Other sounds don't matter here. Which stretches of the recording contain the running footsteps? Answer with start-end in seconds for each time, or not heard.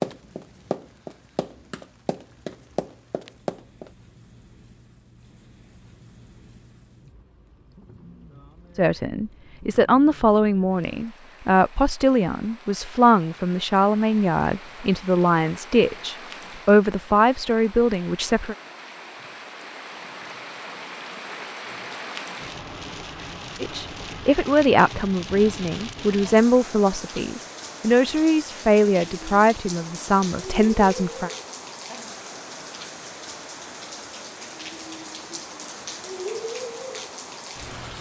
0.0-3.9.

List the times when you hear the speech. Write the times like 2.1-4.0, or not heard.
8.8-18.6, 23.6-31.3.